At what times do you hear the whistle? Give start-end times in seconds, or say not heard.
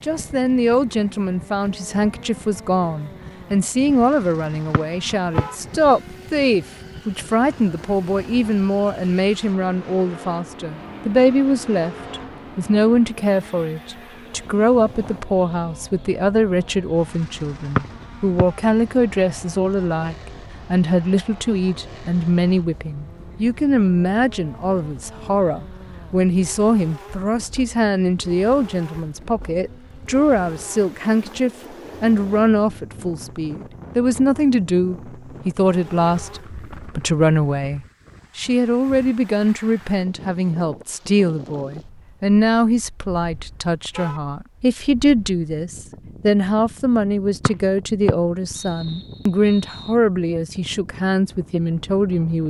4.7-6.0, 17.8-18.4, 47.5-50.0.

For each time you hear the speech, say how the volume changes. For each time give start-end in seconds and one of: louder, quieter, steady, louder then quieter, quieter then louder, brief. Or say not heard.
0.0-52.4 steady.